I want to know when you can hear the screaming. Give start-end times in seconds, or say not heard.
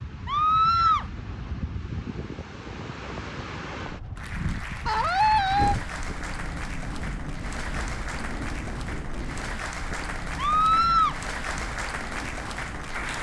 0.2-1.1, 4.8-5.8, 10.3-11.2.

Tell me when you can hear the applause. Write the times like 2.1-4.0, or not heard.
4.2-13.1.